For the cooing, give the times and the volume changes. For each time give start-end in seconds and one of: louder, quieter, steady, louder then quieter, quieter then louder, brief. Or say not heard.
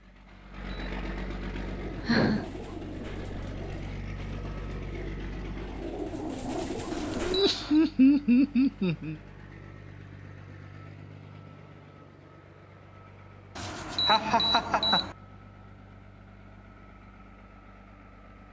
1.5-7.5 quieter then louder.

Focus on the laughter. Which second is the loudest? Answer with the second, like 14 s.
8 s.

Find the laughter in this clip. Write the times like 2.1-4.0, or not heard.
1.9-2.5, 7.2-9.2, 14.1-15.1.